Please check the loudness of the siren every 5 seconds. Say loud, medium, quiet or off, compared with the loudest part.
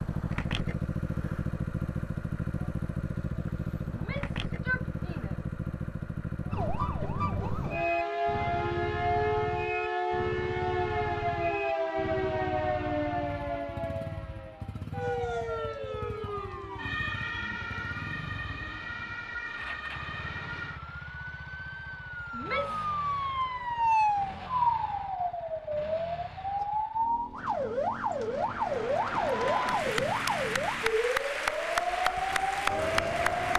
off, loud, loud, medium, loud, loud, loud.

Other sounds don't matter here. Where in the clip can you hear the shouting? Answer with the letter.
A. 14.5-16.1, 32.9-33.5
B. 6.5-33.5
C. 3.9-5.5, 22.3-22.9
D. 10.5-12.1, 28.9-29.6
C.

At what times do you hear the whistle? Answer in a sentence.
You can't hear the whistle here.